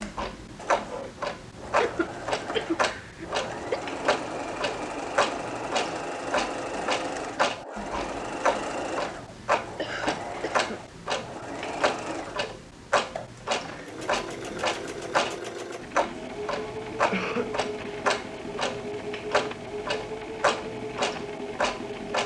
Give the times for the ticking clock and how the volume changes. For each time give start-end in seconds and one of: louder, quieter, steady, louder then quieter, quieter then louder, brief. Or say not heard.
0.0-22.2 steady.